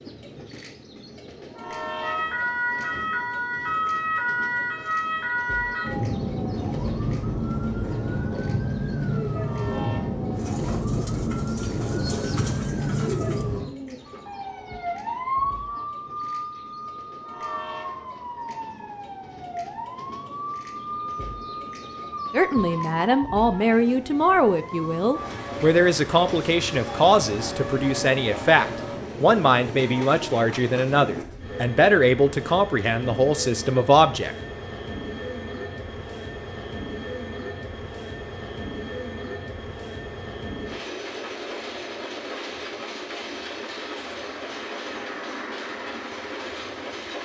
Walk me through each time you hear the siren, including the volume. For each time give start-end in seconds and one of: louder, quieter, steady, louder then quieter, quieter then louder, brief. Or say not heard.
2.0-29.1 quieter.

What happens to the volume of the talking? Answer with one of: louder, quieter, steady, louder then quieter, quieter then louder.
steady.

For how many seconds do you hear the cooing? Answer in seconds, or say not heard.
4 s.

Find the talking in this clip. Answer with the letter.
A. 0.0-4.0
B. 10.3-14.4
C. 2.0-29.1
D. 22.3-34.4
D.